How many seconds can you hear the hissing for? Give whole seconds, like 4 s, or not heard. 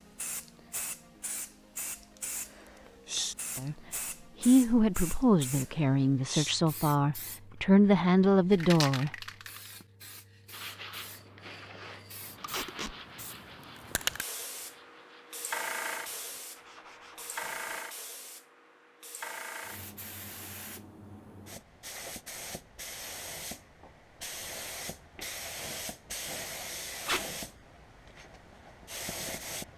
30 s.